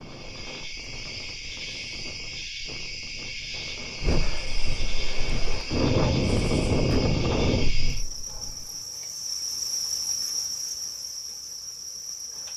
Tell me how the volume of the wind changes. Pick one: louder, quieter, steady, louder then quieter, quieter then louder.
louder.